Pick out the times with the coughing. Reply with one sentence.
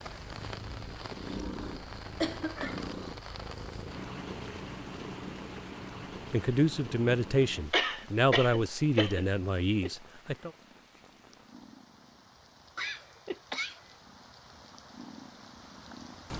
The coughing can be heard from 1.6 to 2.8 s, from 7.7 to 9.2 s and from 12.8 to 13.8 s.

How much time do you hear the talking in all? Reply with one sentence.
You can hear the talking for 4 seconds altogether.